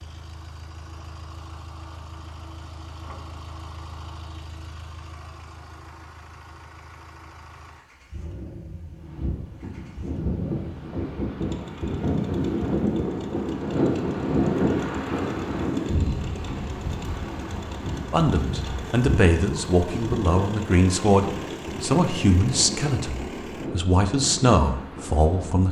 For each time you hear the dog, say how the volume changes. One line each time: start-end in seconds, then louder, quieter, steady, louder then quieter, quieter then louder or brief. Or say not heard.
not heard.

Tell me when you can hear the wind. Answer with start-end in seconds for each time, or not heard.
9.0-25.6.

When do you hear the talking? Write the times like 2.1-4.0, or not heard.
18.1-25.6.